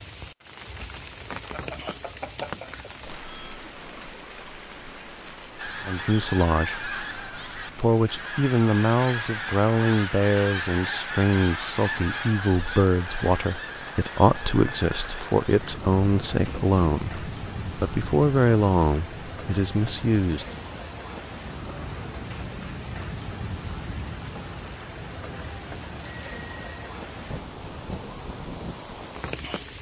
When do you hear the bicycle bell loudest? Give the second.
2 s.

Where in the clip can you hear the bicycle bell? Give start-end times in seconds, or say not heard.
1.5-3.7, 26.1-26.6.